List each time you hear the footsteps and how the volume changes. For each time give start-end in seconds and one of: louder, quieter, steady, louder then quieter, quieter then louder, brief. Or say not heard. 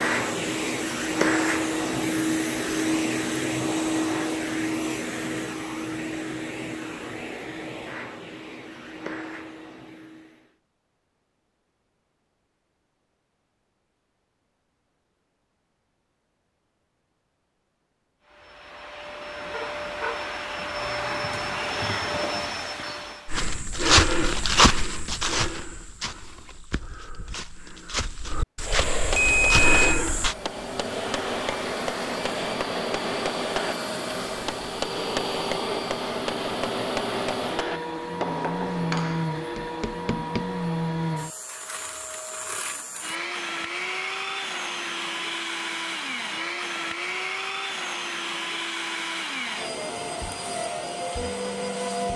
23.2-30.4 quieter then louder.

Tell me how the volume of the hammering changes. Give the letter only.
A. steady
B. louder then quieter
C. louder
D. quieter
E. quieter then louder
A.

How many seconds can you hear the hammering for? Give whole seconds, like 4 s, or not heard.
12 s.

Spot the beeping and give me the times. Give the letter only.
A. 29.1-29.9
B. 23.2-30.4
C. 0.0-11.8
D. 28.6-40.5
A.